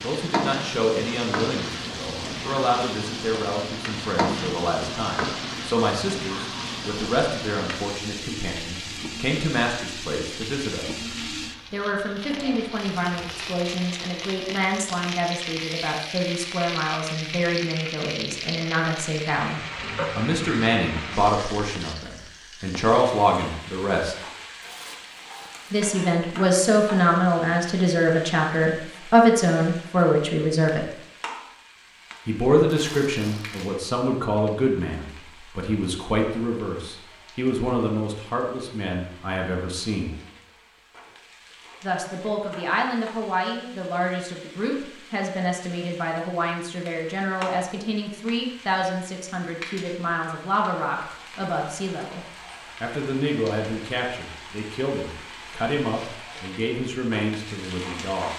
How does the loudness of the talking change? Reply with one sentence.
The loudness of the talking goes up, then down.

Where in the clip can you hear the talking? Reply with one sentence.
You can hear the talking from 0.0 to 11.0 s, from 11.7 to 24.1 s, from 25.7 to 30.9 s, from 32.2 to 40.1 s, from 41.8 to 52.2 s and from 52.8 to 58.3 s.